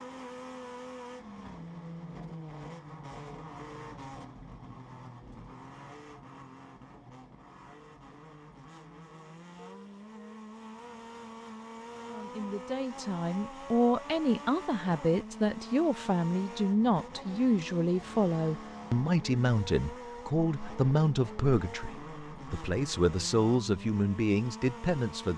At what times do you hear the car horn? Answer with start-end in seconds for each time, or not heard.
9.6-10.4.